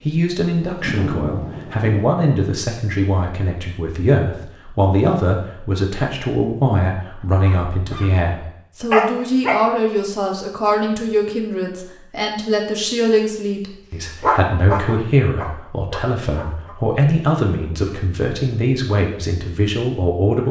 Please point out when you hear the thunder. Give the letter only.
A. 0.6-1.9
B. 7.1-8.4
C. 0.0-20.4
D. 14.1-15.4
A.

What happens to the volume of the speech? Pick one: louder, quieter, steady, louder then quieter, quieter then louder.
steady.